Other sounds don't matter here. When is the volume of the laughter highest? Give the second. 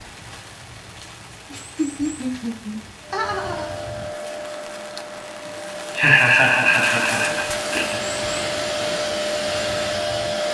6 s.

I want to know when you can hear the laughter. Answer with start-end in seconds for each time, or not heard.
1.5-3.7, 6.0-8.0.